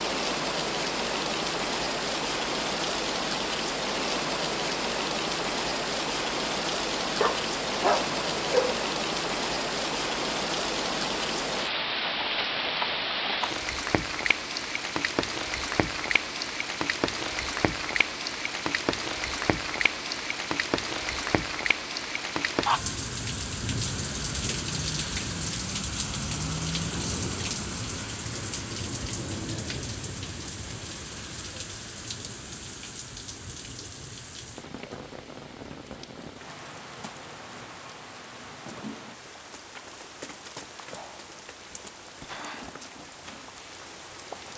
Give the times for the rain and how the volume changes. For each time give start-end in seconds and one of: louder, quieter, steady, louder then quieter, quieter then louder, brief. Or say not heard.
0.0-44.5 quieter.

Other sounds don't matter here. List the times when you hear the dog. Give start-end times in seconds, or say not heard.
7.2-8.8.